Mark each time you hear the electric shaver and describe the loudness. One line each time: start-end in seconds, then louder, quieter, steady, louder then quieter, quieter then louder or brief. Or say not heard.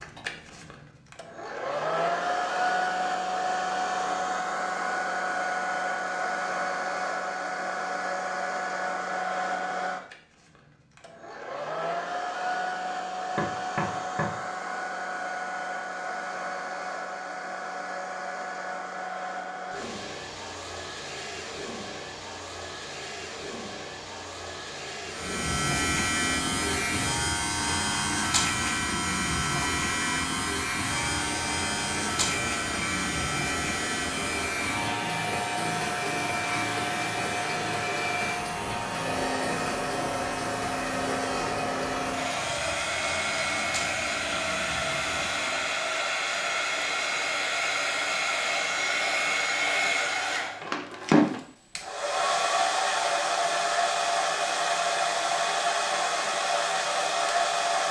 25.1-45.9 quieter.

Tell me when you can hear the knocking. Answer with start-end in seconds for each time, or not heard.
13.3-14.3.